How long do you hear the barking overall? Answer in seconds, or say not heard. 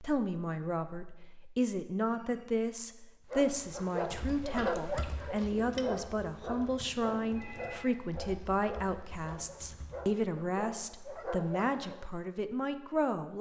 9 s.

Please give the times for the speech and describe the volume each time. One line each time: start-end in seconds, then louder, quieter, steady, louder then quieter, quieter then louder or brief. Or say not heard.
0.0-13.3 steady.